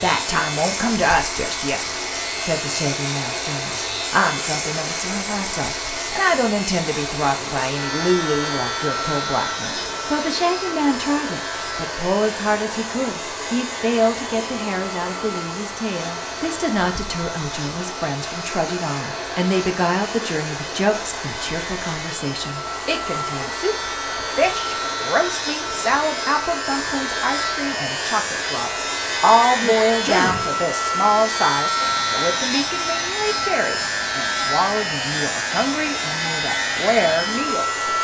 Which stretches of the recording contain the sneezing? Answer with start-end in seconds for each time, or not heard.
29.4-30.6.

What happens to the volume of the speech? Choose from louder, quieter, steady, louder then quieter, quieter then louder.
steady.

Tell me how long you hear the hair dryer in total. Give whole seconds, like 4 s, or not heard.
38 s.